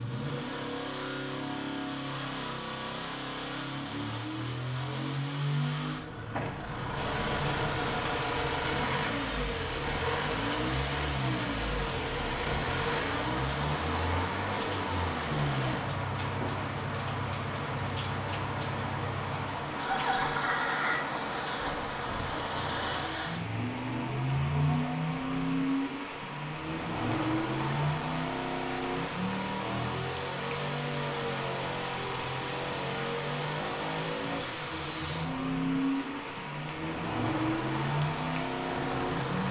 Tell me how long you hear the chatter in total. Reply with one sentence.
The chatter can't be heard in this clip.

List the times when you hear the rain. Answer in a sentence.
You can hear the rain from 7.0 to 39.4 s.